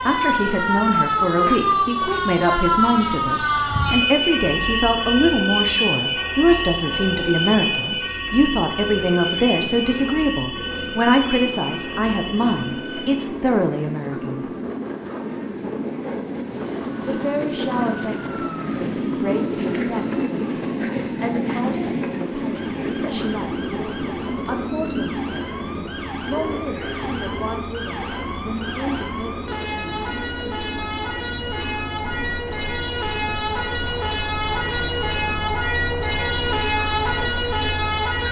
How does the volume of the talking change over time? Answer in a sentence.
The loudness of the talking goes down.